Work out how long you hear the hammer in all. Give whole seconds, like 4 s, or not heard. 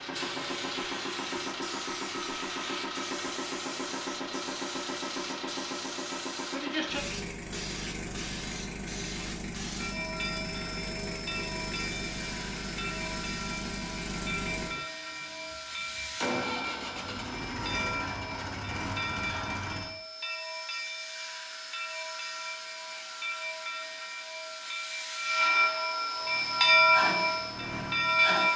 not heard.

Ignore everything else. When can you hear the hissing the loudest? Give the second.
27 s.